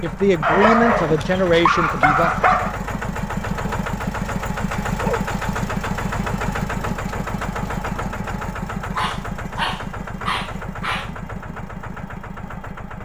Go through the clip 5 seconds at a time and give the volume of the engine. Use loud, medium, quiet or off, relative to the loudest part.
loud, loud, medium.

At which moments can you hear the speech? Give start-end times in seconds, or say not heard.
0.0-2.3.